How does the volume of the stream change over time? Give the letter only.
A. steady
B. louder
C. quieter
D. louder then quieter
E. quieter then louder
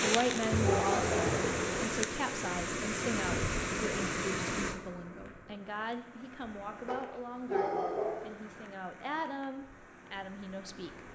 C.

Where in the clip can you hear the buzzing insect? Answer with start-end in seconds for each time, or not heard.
0.1-1.9.